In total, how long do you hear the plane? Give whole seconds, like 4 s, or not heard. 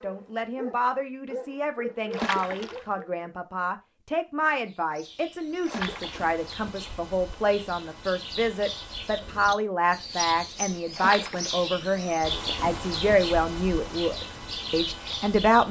not heard.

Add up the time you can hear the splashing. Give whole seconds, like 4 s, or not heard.
2 s.